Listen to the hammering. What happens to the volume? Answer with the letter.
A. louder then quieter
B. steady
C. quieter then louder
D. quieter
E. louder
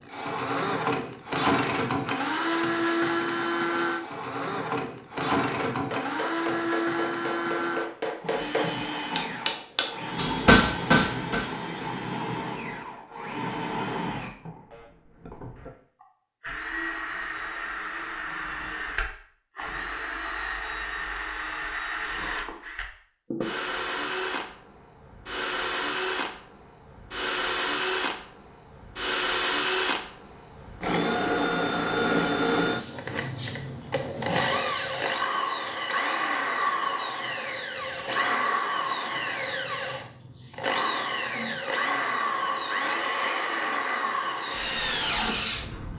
E.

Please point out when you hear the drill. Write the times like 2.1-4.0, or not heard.
0.0-45.9.